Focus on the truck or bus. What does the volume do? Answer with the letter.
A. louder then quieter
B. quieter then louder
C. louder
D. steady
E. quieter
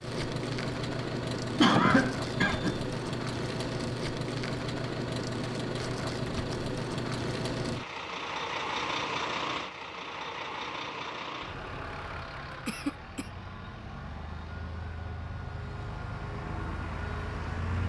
E.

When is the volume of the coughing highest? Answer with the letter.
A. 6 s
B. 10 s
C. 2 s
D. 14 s
C.